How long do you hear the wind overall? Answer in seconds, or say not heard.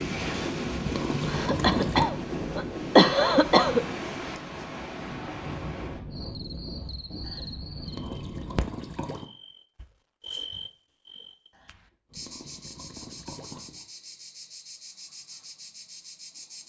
9 s.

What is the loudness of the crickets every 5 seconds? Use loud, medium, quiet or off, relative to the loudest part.
off, loud, loud, loud.